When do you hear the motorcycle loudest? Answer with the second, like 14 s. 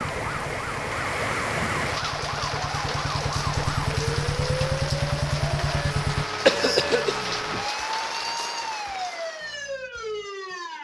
5 s.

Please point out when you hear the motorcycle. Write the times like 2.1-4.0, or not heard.
0.0-6.2.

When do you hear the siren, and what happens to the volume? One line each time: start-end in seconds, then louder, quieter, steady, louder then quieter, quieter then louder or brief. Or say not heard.
0.0-10.7 steady.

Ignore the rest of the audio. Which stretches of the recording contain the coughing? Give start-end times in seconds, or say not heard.
6.5-7.4.